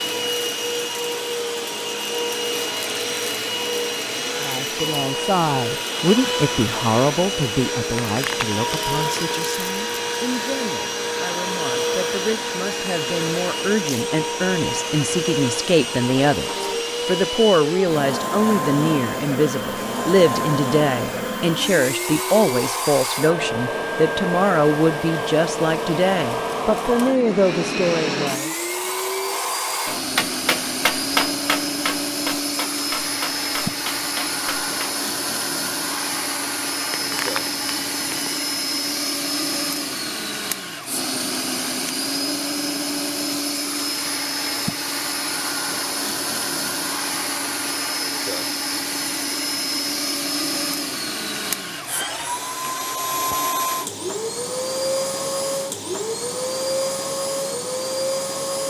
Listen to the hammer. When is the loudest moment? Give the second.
31 s.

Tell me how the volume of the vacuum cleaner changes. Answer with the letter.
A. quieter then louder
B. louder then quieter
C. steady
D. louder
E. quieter
C.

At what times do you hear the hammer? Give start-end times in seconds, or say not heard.
29.9-35.0.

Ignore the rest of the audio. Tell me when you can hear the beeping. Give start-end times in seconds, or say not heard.
8.0-9.4, 36.9-38.4.